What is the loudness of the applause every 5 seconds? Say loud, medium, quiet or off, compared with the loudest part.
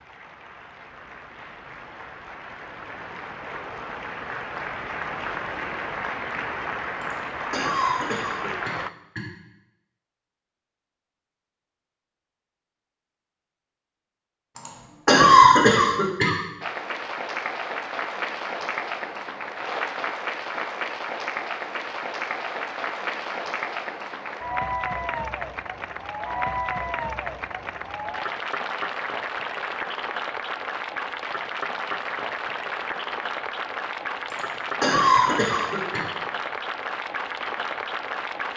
medium, loud, off, loud, loud, loud, loud, loud.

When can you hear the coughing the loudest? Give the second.
15 s.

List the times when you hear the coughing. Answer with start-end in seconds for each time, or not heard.
7.0-9.3, 14.6-16.4, 34.3-36.0.